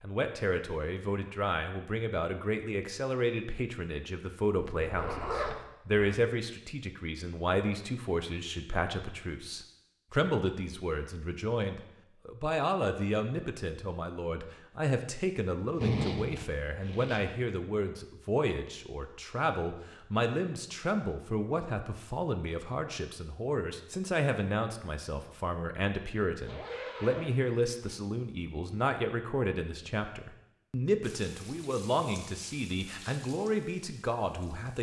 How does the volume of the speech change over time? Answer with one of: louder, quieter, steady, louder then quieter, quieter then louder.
steady.